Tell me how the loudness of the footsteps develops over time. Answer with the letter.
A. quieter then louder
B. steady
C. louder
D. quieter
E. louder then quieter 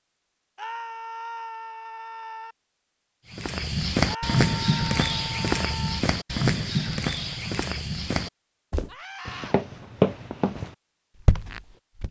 A.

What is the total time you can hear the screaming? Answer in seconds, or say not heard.
5 s.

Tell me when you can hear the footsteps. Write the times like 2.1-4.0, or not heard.
3.3-12.0.